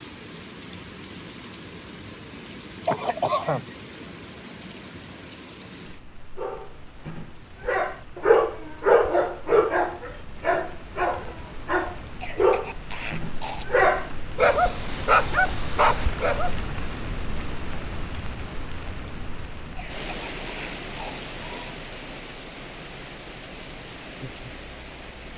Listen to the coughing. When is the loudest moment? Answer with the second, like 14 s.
3 s.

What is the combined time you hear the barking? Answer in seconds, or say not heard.
10 s.